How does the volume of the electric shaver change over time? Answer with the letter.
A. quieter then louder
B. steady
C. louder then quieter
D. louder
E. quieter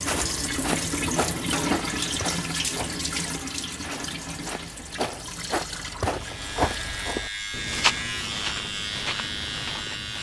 B.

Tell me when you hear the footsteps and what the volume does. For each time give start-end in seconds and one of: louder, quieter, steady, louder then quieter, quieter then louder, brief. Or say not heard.
0.1-10.1 quieter then louder.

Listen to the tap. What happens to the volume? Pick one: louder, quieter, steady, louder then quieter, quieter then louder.
quieter.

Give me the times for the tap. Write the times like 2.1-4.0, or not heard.
0.0-7.2.